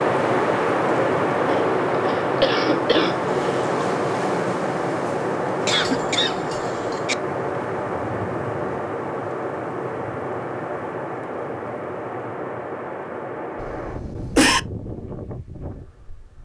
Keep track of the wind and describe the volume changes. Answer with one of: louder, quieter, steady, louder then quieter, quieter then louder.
quieter.